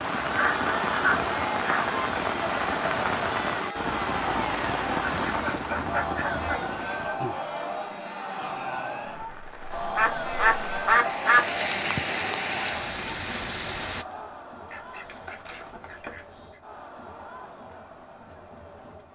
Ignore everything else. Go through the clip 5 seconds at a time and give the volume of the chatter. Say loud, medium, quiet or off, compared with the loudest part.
loud, loud, loud, quiet.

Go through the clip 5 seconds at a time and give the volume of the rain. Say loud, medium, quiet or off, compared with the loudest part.
loud, medium, loud, off.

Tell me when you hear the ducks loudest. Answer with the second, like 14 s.
11 s.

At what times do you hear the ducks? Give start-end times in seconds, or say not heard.
0.1-1.9, 5.0-6.6, 9.7-11.4, 14.7-16.2.